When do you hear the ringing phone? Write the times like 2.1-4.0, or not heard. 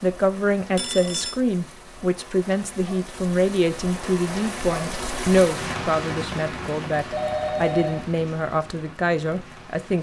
0.8-1.4, 7.1-8.1.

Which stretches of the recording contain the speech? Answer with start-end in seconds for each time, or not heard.
0.0-9.9.